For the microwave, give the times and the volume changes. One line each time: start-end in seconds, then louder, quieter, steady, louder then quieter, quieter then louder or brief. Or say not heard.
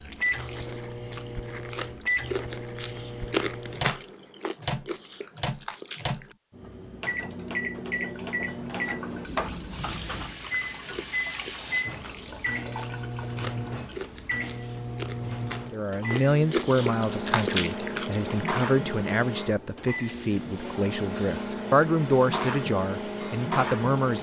0.0-24.1 steady.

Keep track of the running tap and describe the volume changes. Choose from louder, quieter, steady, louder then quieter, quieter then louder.
louder then quieter.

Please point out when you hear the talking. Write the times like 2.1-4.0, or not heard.
15.7-24.1.